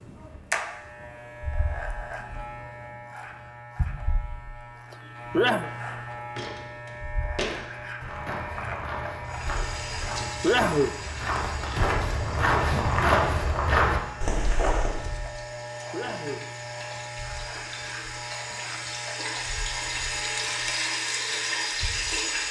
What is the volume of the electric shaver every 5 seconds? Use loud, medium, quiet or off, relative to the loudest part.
loud, loud, loud, loud, medium.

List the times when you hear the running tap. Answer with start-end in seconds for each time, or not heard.
9.2-22.4.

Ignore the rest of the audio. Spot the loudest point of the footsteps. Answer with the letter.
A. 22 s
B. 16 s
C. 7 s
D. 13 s
D.